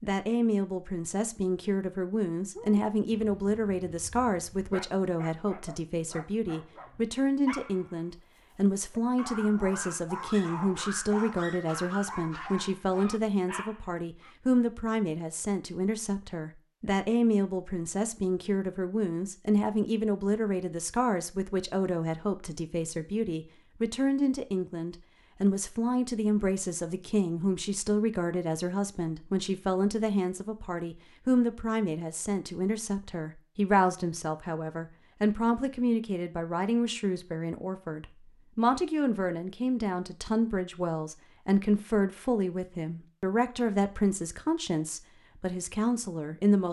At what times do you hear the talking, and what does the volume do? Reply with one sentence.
You can hear the talking from 0.0 to 46.6 s, at a steady volume.